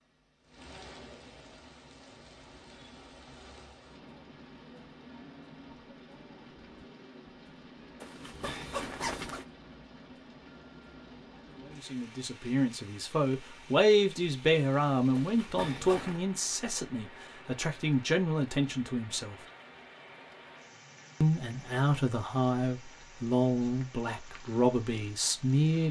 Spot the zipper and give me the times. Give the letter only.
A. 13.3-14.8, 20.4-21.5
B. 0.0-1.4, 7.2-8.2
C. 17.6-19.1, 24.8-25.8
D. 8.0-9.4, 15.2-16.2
D.